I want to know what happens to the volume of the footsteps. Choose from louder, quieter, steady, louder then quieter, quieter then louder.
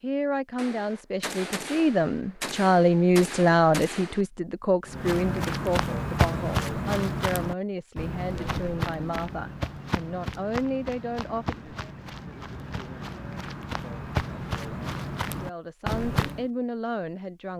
quieter then louder.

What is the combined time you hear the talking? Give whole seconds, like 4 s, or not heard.
14 s.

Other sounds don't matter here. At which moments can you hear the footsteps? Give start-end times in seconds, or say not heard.
4.8-16.4.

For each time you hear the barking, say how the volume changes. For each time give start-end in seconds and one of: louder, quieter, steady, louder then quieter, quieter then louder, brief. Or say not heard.
not heard.